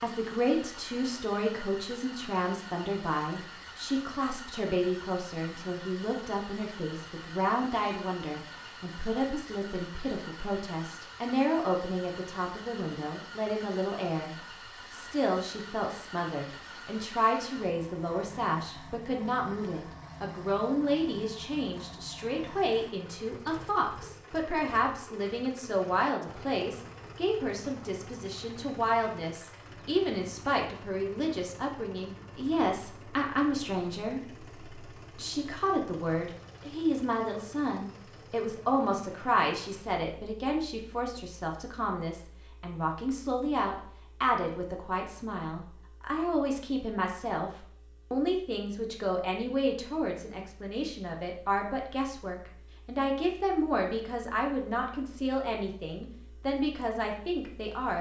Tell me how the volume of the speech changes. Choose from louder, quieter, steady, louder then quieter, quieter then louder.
steady.